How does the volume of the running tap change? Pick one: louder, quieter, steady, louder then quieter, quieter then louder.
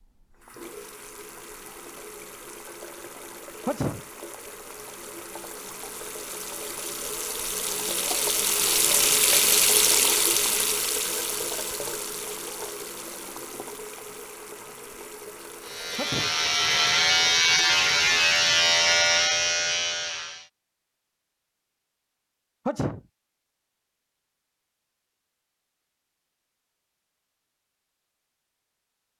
louder then quieter.